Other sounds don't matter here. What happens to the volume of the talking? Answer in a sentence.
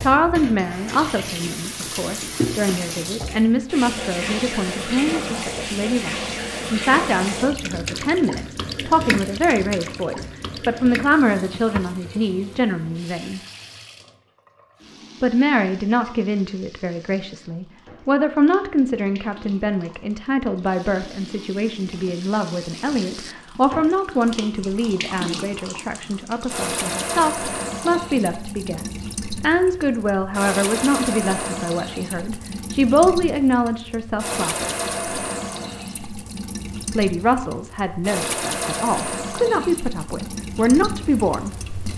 The loudness of the talking stays about the same.